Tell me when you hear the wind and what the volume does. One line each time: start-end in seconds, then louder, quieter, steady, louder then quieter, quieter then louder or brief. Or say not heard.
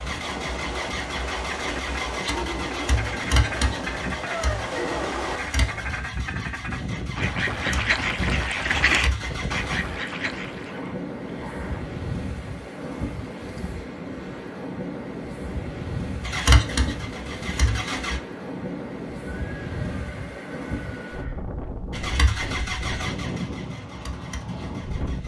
0.0-25.2 steady.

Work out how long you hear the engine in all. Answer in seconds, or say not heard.
15 s.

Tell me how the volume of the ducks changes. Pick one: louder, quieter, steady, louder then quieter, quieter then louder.
louder.